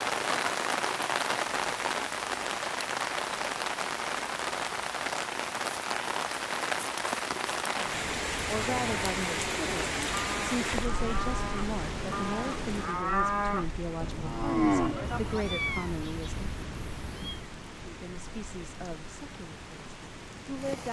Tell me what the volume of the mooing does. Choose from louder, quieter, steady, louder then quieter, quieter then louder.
louder.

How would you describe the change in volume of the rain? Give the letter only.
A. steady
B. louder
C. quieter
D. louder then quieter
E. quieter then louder
C.